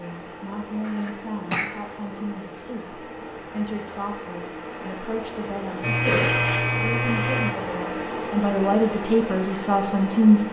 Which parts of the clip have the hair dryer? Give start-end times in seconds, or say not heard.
0.0-10.4.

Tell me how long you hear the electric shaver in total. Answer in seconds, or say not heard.
2 s.